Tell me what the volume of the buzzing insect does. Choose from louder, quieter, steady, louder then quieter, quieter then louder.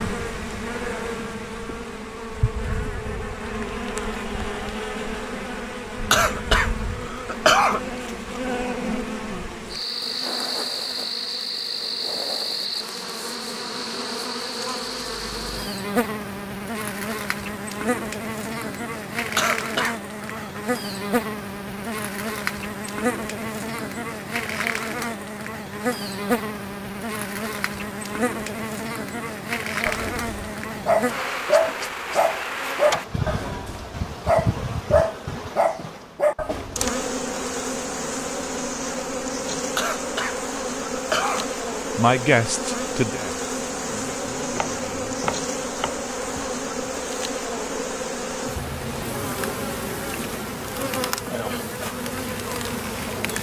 steady.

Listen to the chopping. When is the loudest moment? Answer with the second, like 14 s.
45 s.